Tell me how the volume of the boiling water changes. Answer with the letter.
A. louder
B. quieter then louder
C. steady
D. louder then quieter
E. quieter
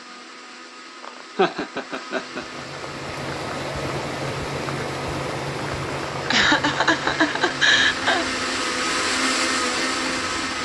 E.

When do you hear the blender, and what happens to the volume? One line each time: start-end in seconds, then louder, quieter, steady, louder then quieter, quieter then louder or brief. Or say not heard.
0.0-10.6 louder.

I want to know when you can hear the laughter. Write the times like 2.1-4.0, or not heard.
1.0-2.5, 6.3-8.3.